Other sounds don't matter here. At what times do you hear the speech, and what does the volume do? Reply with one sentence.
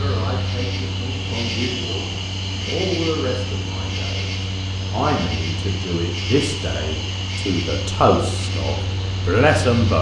You can hear the speech from 0.0 to 9.9 s, getting louder.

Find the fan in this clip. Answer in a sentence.
The fan can be heard from 0.0 to 9.9 s.